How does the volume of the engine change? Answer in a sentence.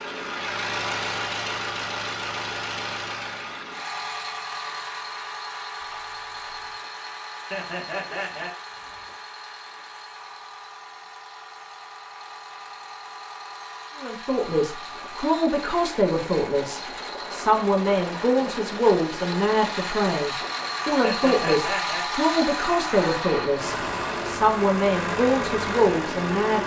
The loudness of the engine goes down, then up.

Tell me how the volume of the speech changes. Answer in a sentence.
The volume of the speech stays about the same.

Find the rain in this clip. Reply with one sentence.
The rain can't be heard in this clip.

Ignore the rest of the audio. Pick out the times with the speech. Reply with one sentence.
You can hear the speech from 14.0 to 26.6 s.